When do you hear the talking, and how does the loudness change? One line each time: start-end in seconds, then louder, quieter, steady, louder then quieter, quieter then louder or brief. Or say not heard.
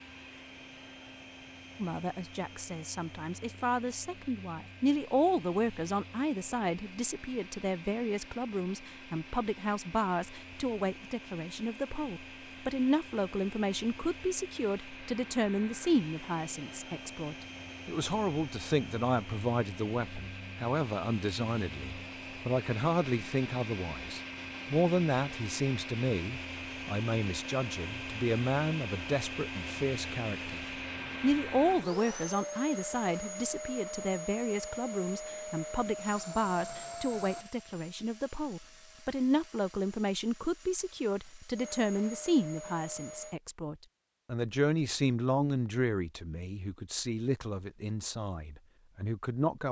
1.8-49.6 steady.